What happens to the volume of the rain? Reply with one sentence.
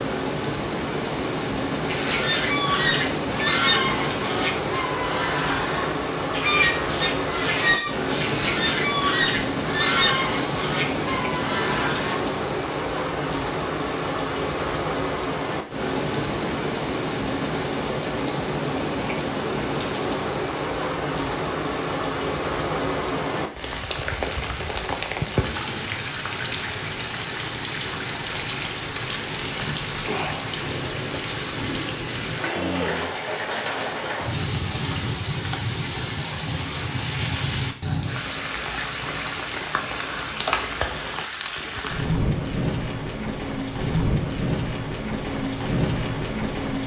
The volume of the rain stays about the same.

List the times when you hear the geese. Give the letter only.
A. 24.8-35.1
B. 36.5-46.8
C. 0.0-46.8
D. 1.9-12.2
D.